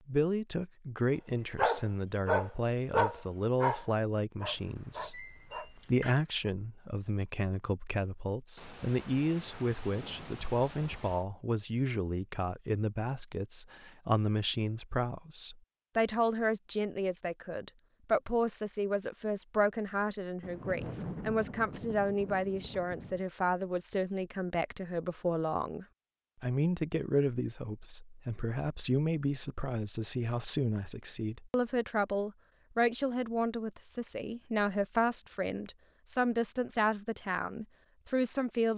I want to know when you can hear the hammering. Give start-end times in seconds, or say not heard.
not heard.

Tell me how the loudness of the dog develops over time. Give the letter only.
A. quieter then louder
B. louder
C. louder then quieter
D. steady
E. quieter
E.